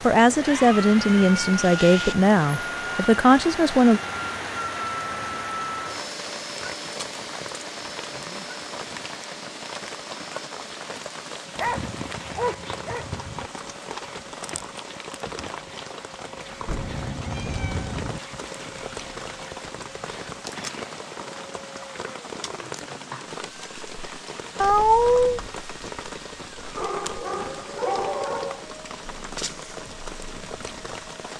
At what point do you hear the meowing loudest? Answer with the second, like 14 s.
25 s.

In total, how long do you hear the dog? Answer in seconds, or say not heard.
4 s.